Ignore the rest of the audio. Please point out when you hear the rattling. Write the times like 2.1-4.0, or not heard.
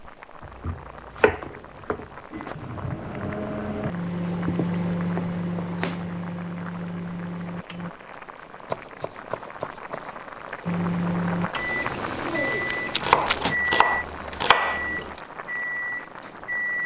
12.4-13.4.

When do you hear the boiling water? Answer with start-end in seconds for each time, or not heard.
0.0-16.8.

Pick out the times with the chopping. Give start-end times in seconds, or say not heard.
0.4-2.0, 4.2-6.2, 8.7-10.1, 13.0-15.2.